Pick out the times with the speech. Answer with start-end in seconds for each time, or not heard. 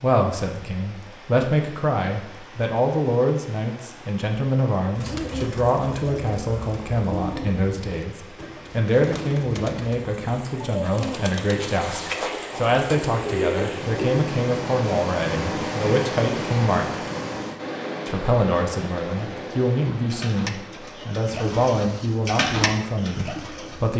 0.0-17.0, 18.1-23.9.